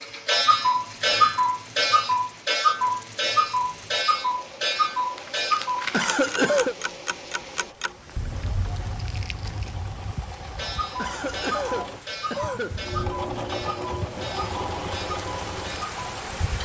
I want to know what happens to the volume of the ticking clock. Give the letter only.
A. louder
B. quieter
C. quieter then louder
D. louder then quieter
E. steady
B.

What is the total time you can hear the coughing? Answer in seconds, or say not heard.
3 s.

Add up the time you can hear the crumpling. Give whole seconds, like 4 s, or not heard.
2 s.